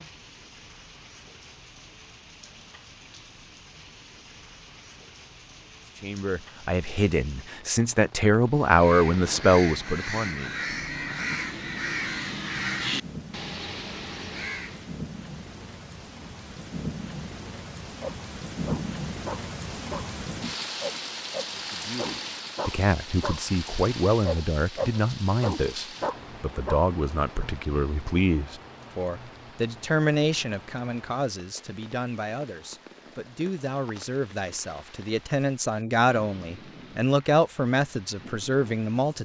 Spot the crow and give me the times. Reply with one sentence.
The crow can be heard from 8.4 to 14.9 s.